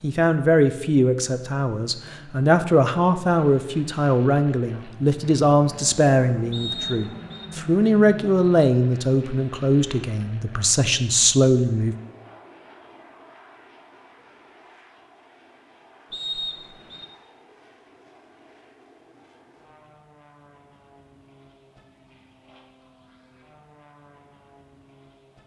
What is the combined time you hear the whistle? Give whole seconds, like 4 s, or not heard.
2 s.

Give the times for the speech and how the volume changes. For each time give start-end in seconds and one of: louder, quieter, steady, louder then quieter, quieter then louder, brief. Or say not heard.
0.0-11.9 steady.